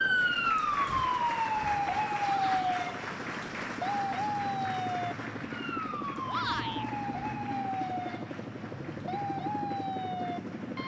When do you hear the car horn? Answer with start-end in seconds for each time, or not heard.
not heard.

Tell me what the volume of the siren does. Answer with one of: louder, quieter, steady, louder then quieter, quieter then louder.
quieter.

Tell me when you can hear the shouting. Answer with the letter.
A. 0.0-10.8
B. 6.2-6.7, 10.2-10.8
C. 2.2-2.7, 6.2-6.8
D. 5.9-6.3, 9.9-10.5
C.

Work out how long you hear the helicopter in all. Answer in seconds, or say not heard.
11 s.